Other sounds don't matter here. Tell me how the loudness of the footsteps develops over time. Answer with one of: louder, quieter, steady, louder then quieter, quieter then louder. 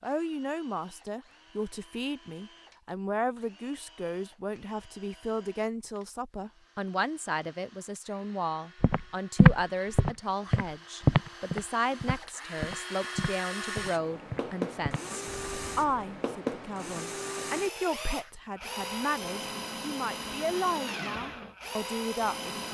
quieter.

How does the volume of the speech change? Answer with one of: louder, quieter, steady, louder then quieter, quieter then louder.
steady.